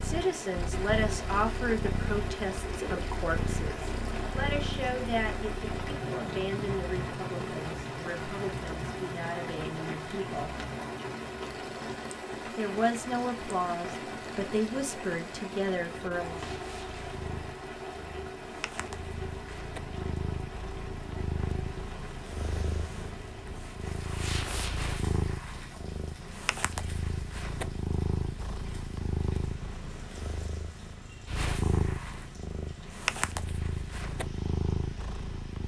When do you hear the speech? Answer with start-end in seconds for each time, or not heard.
0.0-10.6, 12.6-16.4.